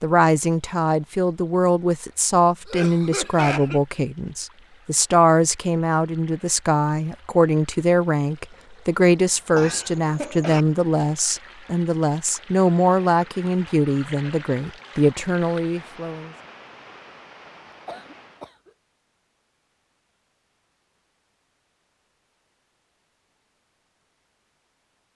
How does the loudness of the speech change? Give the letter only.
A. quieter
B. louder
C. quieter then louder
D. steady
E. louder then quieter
D.